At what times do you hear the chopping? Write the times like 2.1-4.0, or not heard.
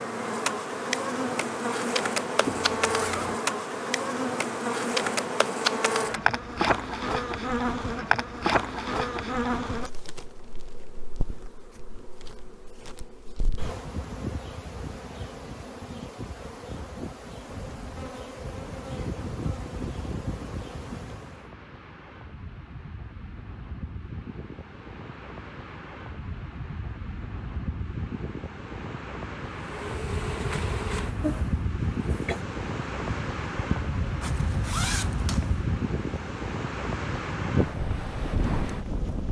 not heard.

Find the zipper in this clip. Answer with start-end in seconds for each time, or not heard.
2.5-3.4, 34.2-35.7.